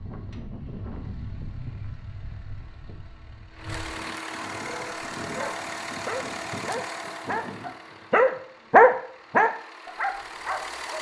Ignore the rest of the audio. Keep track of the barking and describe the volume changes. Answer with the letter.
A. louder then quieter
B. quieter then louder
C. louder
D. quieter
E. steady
A.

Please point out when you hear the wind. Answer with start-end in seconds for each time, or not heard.
0.0-7.8.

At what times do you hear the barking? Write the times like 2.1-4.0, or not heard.
4.7-10.9.